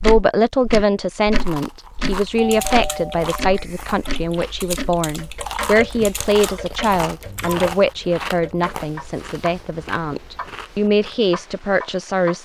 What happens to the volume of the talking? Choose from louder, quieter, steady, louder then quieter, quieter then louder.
steady.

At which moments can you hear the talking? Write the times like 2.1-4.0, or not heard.
0.0-12.3.